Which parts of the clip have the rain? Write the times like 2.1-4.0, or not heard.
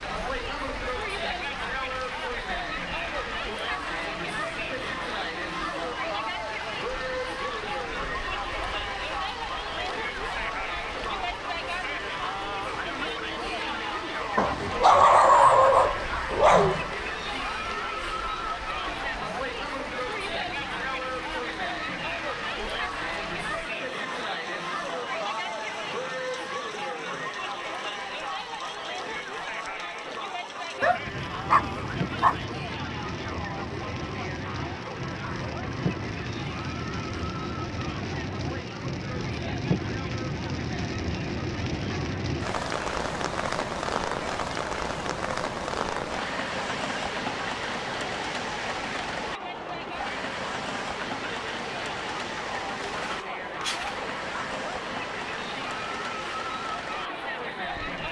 0.0-58.0.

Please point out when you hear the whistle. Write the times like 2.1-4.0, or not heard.
not heard.